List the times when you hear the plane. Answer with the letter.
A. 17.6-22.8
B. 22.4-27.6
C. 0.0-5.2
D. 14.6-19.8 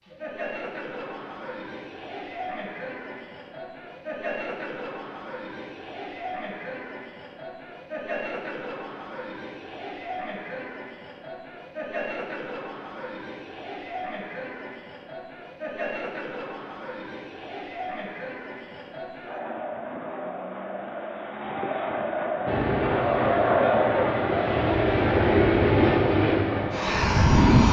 B.